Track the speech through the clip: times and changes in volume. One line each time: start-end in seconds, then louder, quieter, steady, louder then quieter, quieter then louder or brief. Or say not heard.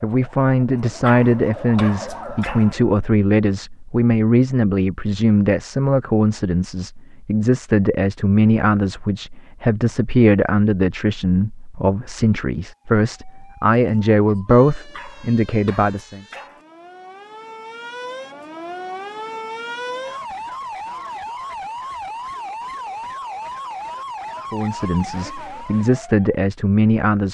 0.0-16.2 steady
24.5-27.2 brief.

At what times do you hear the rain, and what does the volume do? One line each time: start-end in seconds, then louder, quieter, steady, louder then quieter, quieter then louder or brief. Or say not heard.
not heard.